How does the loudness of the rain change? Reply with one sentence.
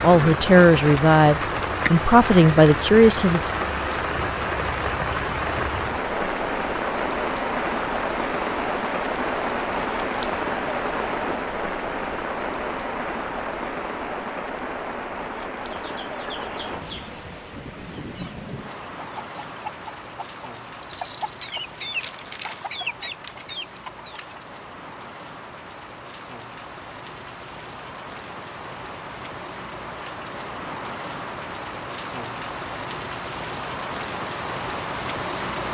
The volume of the rain goes down, then up.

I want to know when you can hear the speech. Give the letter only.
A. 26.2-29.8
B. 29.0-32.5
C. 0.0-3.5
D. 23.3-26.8
C.